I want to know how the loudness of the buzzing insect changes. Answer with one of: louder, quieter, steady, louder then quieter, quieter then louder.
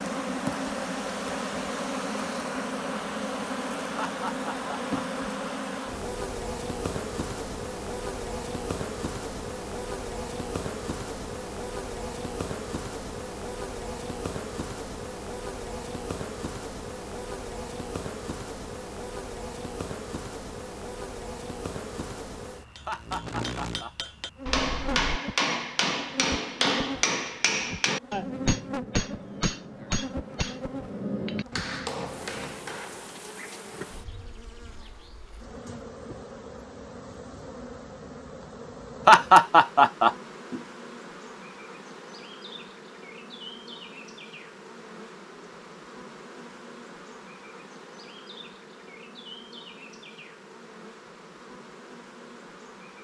quieter.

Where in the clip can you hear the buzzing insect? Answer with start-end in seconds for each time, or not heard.
0.0-52.9.